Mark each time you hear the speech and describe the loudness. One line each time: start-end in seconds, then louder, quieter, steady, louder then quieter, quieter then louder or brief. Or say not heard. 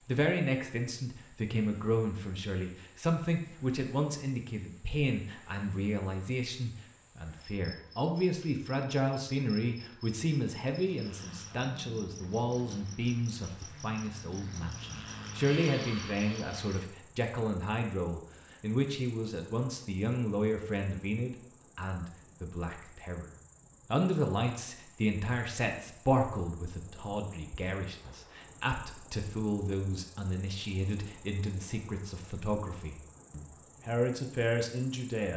0.0-35.3 steady.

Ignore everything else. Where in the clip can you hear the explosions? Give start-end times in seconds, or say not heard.
not heard.